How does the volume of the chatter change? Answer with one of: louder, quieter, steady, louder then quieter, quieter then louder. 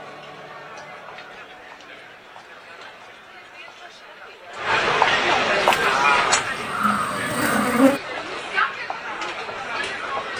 louder then quieter.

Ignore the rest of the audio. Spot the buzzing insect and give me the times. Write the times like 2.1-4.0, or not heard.
5.6-8.0.